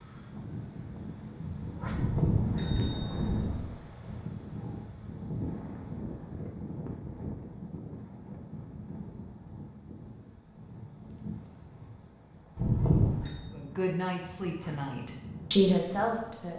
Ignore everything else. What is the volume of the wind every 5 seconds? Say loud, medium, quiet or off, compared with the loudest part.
loud, loud, medium, medium.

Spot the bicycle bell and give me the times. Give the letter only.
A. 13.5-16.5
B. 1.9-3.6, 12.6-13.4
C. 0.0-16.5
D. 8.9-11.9
B.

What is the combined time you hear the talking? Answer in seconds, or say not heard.
3 s.